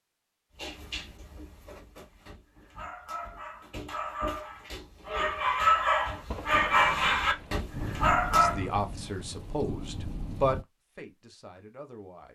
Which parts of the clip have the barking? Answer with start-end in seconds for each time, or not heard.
0.6-8.7.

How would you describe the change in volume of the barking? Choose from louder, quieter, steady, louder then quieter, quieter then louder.
louder.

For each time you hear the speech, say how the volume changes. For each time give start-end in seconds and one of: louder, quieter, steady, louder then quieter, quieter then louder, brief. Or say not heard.
8.3-12.3 louder then quieter.